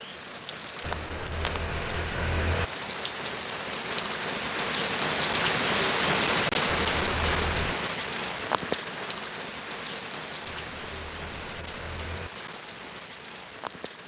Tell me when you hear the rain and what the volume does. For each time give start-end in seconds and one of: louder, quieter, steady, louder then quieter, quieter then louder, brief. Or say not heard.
0.0-14.0 louder then quieter.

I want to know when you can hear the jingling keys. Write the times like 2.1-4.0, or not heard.
0.8-2.6, 6.7-7.8, 10.4-12.3.